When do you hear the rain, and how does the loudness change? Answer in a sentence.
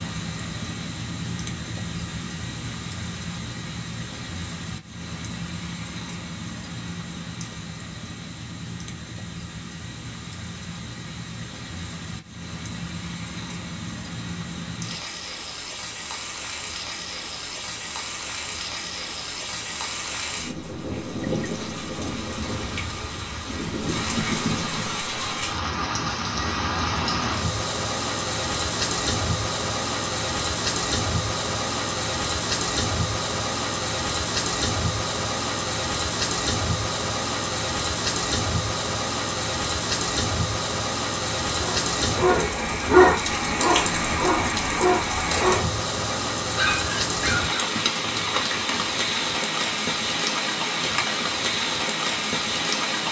You can hear the rain from 0.0 to 53.0 s, getting louder.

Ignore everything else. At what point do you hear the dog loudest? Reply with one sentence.
The volume of the dog peaks at 43 seconds.